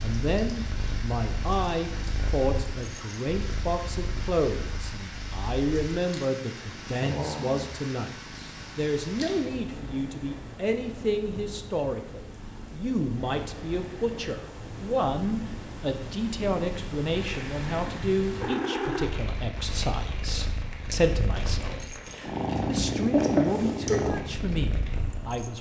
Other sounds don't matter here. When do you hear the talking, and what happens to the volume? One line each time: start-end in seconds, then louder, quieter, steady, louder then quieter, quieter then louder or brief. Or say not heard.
0.0-25.5 steady.